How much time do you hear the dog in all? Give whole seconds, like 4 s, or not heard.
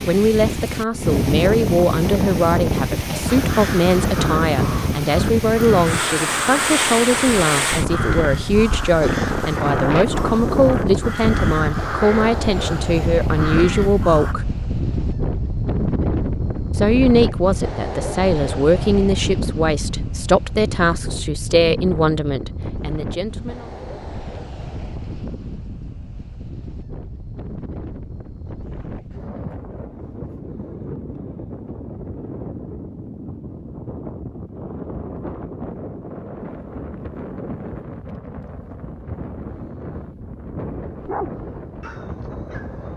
2 s.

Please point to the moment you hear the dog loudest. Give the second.
41 s.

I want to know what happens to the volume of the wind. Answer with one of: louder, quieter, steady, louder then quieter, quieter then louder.
quieter.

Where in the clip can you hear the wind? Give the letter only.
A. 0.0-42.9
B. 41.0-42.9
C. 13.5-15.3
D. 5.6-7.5
A.